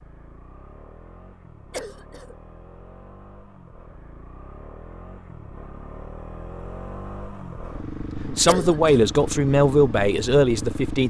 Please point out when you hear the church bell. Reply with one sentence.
You can't hear the church bell here.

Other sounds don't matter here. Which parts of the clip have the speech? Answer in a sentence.
The speech can be heard from 8.1 to 11.0 s.